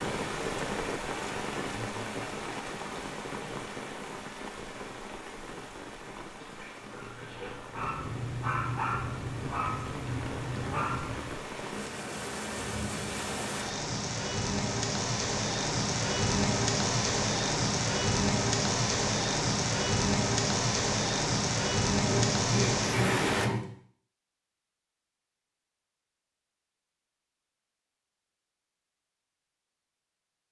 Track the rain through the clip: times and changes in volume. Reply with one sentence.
The rain can be heard from 0.0 to 23.5 s, getting quieter then louder.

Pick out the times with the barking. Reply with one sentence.
The barking can be heard from 6.8 to 11.3 s.